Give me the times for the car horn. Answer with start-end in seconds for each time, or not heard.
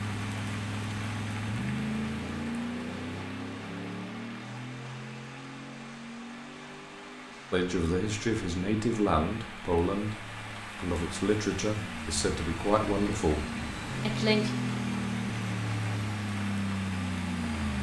not heard.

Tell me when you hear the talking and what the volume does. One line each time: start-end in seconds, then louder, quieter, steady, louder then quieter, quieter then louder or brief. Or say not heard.
7.5-14.5 steady.